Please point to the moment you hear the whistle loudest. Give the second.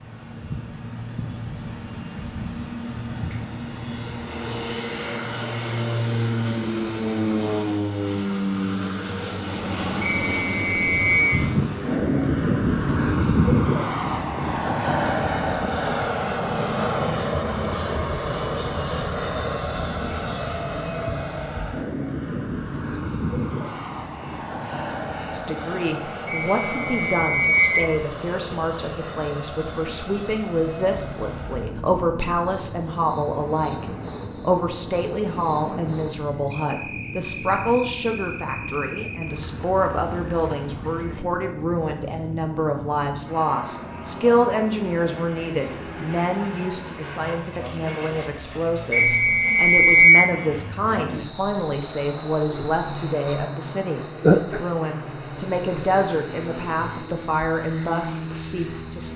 50 s.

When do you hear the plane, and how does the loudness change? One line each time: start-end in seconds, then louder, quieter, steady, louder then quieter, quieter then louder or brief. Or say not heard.
0.0-59.1 quieter.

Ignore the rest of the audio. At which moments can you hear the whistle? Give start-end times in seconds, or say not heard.
10.0-11.3, 26.2-27.9, 48.9-50.2.